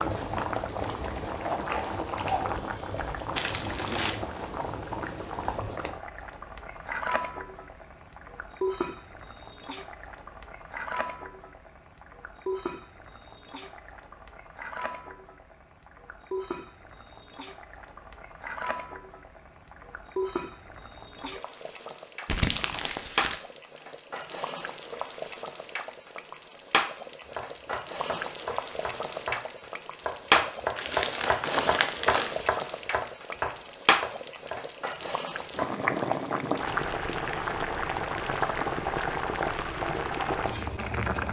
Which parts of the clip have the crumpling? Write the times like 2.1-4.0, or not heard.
3.4-4.2, 22.2-23.4, 30.8-32.4.